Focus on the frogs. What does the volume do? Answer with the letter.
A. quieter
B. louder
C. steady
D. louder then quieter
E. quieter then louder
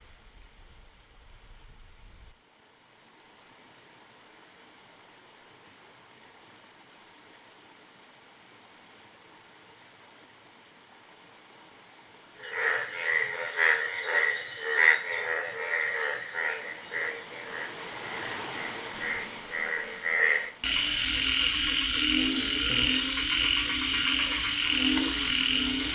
E.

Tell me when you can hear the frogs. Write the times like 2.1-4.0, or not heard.
12.4-25.9.